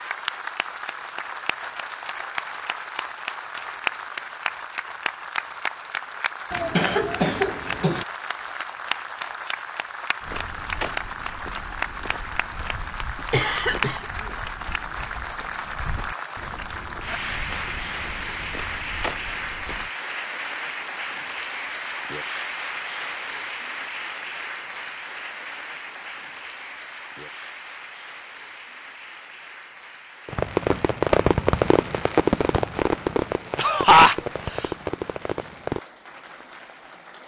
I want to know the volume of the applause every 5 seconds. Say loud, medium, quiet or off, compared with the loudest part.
loud, loud, loud, loud, loud, medium, quiet, quiet.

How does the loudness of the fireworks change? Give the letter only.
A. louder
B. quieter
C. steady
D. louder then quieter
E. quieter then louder
B.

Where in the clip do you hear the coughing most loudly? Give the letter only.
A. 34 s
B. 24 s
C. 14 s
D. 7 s
A.